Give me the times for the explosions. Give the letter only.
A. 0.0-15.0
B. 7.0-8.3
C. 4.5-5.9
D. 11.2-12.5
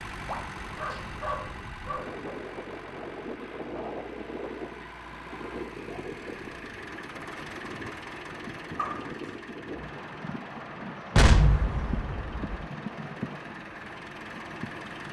D.